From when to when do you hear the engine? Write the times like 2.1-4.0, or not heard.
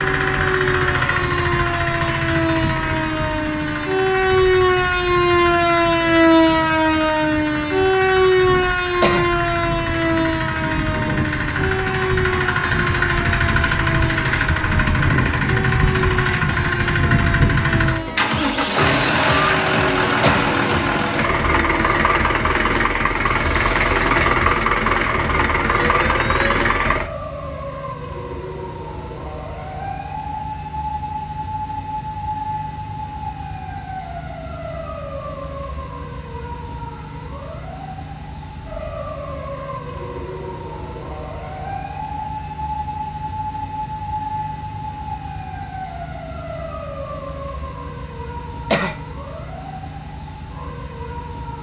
0.0-27.1.